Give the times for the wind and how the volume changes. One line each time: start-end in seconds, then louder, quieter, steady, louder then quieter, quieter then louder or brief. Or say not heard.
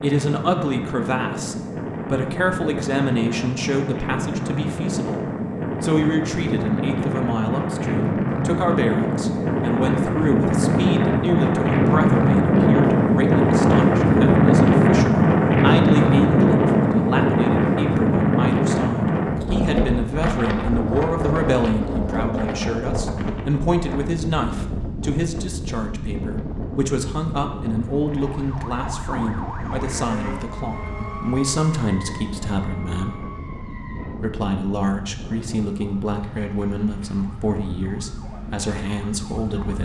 0.0-39.8 louder then quieter.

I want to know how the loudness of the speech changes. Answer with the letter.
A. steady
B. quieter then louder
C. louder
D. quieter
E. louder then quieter
A.